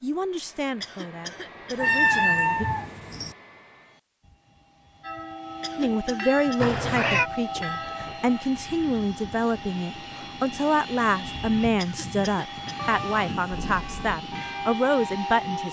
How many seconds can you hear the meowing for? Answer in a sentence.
You can hear the meowing for 4 seconds altogether.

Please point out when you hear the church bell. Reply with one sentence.
The church bell can be heard from 5.0 to 8.4 s and from 13.6 to 15.6 s.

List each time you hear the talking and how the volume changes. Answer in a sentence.
The talking can be heard briefly from 0.0 to 2.6 s; and from 5.8 to 15.6 s, at a steady volume.